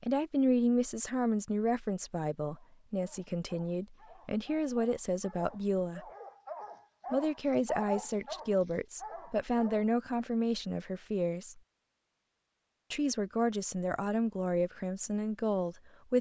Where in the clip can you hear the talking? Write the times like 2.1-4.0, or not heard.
0.0-6.0, 7.1-11.6, 12.9-16.1.